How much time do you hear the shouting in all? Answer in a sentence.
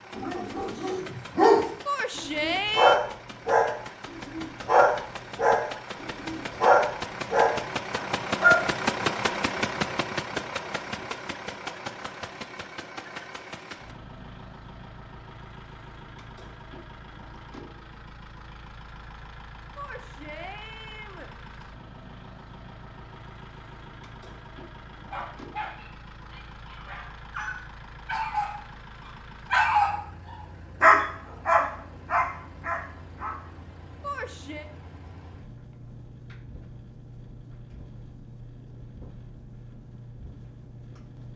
The shouting can be heard for 3 seconds in total.